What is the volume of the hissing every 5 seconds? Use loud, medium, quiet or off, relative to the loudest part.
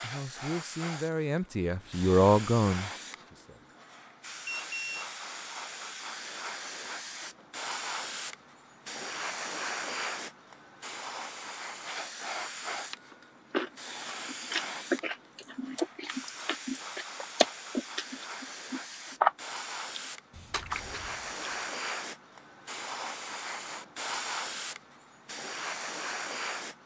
medium, loud, loud, medium, loud, loud.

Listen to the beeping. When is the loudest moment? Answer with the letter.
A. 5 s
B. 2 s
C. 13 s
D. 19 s
A.